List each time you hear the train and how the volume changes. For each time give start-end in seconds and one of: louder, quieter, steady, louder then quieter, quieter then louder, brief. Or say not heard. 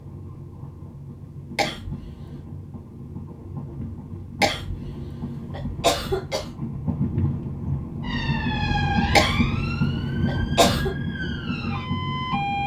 0.0-12.6 louder.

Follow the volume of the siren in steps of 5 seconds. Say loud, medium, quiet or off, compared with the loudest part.
off, loud, loud.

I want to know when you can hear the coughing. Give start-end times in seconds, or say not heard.
1.6-2.4, 4.4-6.5, 9.2-10.9.